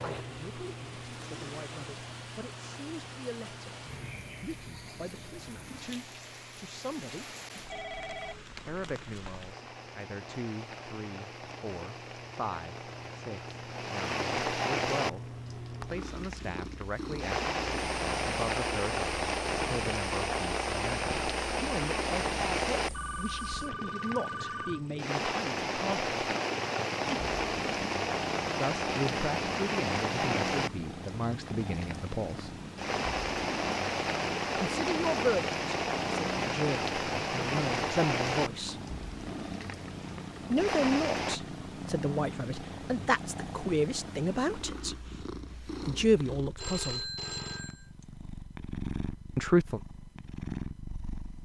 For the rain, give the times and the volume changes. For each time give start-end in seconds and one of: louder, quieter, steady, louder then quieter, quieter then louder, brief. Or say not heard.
0.0-41.4 louder.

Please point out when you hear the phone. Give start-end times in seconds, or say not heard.
7.7-8.4, 22.9-24.9, 46.5-47.9.